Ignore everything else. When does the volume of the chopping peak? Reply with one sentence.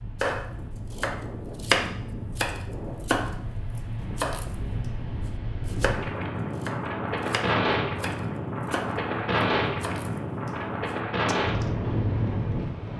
The volume of the chopping peaks at 2 seconds.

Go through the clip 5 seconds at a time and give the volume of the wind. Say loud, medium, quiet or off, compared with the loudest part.
medium, loud, loud.